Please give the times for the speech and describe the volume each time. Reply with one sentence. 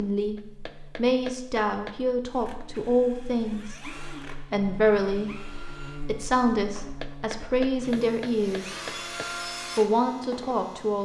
The speech can be heard from 0.0 to 8.8 s, at a steady volume; and briefly from 9.8 to 11.0 s.